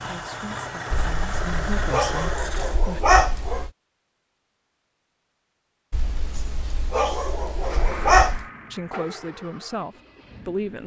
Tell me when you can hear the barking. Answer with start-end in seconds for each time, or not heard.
0.9-3.7, 5.9-8.4.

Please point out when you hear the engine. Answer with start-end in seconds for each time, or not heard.
0.0-2.9, 7.6-10.8.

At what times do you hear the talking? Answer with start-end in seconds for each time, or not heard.
0.0-3.0, 8.7-10.8.